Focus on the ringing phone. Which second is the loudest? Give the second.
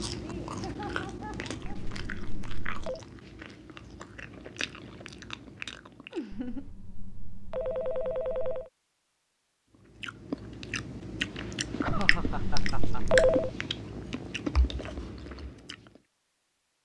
13 s.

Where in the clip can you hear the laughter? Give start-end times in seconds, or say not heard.
0.1-1.9, 6.1-6.7, 11.3-13.0.